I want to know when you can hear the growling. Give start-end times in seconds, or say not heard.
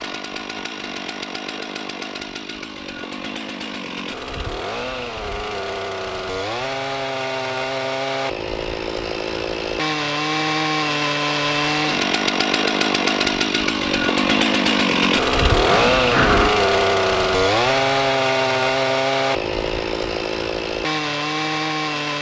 15.7-16.5.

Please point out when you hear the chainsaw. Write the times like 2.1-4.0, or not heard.
0.0-22.1.